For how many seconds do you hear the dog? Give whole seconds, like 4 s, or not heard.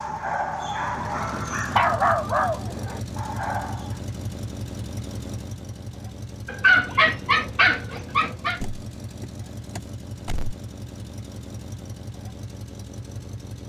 6 s.